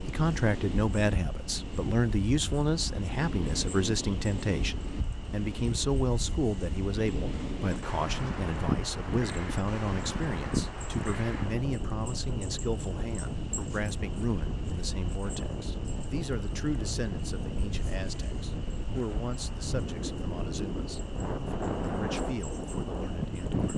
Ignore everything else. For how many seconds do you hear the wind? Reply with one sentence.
The wind can be heard for 24 seconds in total.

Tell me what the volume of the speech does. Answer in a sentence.
The loudness of the speech goes down.